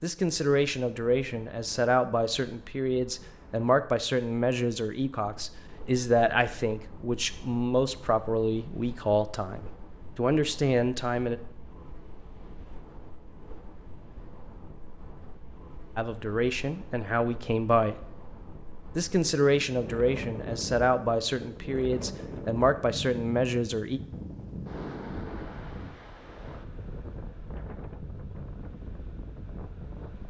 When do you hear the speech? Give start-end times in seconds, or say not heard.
0.0-11.4, 15.9-17.9, 18.9-24.0.